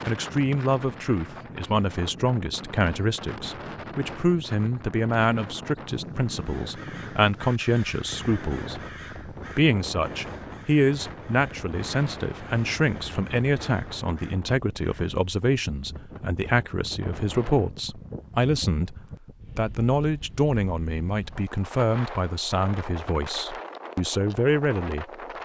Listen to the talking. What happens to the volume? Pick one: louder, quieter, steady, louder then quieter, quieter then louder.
steady.